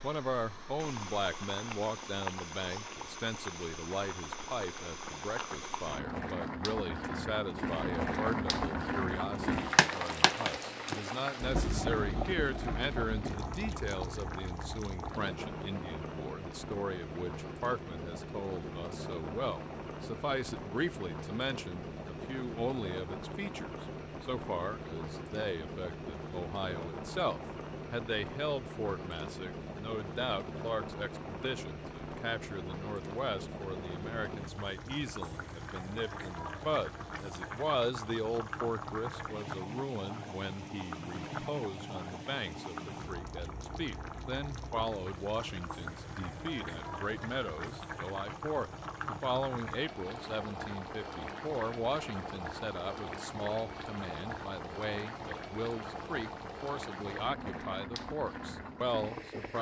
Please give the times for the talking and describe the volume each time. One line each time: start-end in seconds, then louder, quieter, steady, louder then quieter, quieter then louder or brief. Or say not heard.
0.0-59.5 steady.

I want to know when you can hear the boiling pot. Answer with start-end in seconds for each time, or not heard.
0.0-59.5.